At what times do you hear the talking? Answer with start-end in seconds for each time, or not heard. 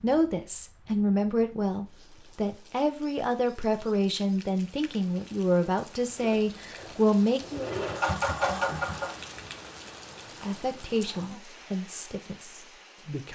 0.0-7.7, 10.4-13.2.